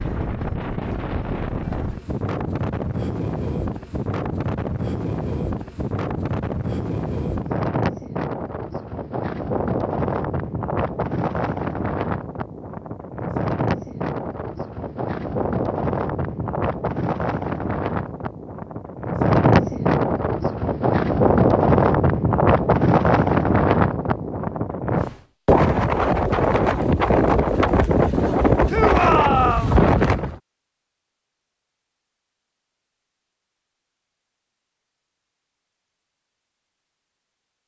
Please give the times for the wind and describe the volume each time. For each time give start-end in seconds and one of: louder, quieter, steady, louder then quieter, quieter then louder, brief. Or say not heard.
0.0-30.4 louder.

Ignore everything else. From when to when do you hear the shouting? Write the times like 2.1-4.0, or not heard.
28.6-29.8.